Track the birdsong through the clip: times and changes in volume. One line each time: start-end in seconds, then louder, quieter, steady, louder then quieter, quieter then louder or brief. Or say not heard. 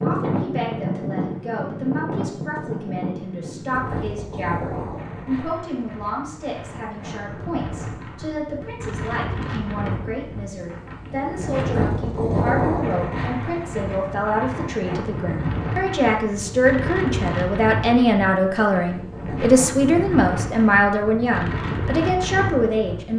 not heard.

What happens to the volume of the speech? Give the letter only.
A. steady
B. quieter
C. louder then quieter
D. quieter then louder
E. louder
E.